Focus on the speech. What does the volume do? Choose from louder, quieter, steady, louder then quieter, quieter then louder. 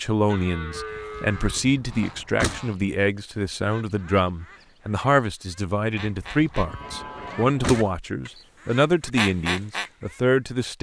steady.